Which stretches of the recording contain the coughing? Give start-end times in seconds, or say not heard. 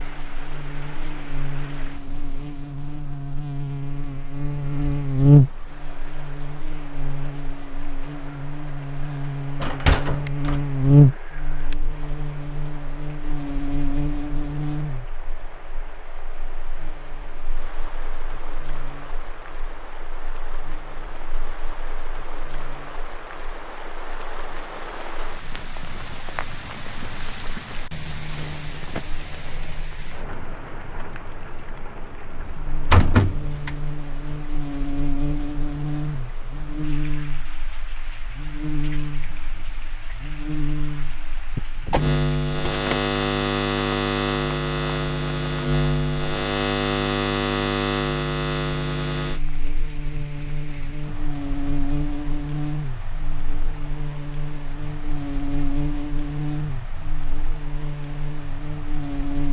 not heard.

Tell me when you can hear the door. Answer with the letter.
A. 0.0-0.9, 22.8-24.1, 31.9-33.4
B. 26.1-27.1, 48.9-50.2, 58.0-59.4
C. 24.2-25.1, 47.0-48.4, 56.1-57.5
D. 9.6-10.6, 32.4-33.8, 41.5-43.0
D.